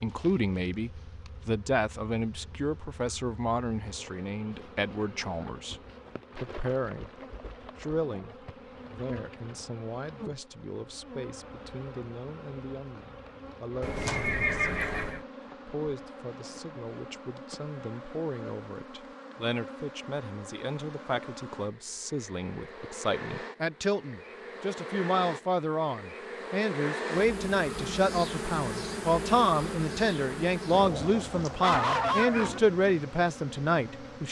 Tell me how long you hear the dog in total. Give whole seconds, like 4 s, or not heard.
2 s.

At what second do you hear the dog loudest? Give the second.
32 s.